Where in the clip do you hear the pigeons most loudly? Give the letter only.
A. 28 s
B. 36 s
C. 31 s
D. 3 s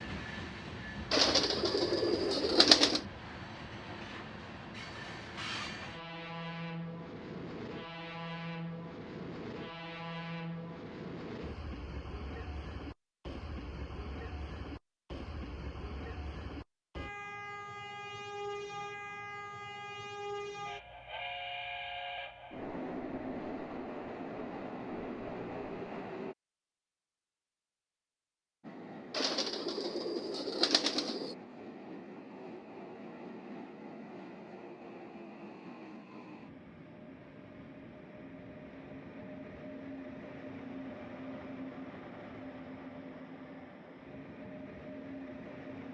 D.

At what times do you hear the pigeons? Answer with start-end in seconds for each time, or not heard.
1.1-3.0, 29.1-31.4.